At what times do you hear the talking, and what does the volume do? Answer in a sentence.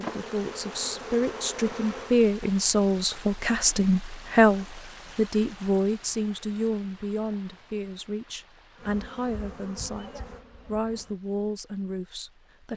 The talking can be heard from 0.0 to 12.7 s, getting quieter.